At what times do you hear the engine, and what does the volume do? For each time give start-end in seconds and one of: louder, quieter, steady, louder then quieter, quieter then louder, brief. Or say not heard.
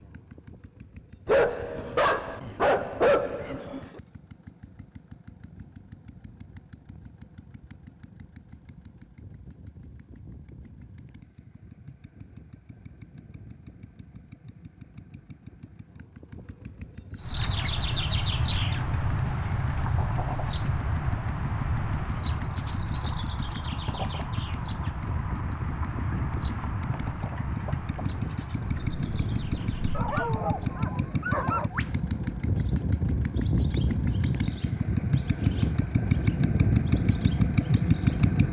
0.0-38.4 louder.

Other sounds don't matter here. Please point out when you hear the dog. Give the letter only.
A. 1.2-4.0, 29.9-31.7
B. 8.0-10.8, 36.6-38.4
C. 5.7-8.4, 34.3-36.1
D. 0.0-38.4
A.